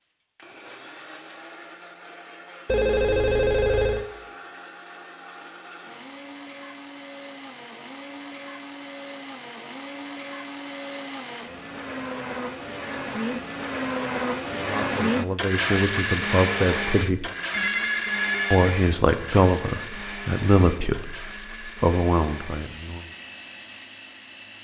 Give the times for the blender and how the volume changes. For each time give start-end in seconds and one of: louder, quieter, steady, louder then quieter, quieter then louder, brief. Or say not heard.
0.3-24.5 louder then quieter.